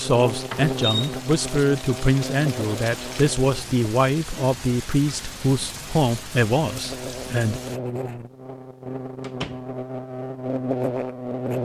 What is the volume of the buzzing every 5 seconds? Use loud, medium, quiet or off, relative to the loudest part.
medium, medium, loud.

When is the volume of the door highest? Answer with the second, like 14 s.
1 s.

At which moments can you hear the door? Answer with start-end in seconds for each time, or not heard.
0.5-1.1, 9.2-9.6.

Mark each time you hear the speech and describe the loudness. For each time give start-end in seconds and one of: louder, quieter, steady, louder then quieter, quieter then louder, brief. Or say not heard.
0.0-7.6 steady.